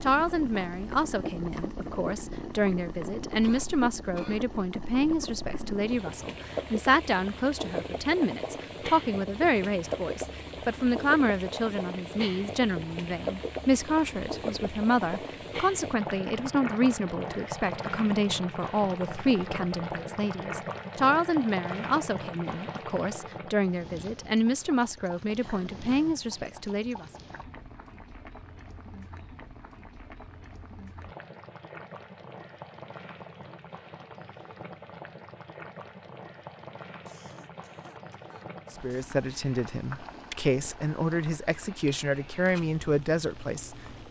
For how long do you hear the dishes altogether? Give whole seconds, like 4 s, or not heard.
not heard.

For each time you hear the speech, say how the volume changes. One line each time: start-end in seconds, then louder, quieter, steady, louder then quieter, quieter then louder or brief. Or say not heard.
0.0-27.1 steady
38.7-43.8 steady.